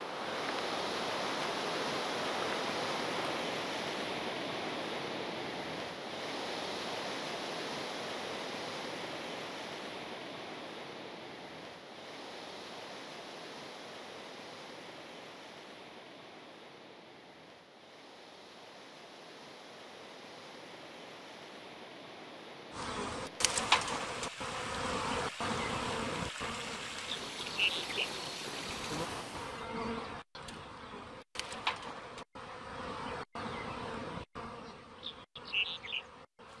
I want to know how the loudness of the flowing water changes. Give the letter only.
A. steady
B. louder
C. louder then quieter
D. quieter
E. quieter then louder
E.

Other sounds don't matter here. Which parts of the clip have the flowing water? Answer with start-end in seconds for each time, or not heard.
0.0-29.7.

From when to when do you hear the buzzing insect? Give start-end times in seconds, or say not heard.
0.0-3.5, 22.8-36.5.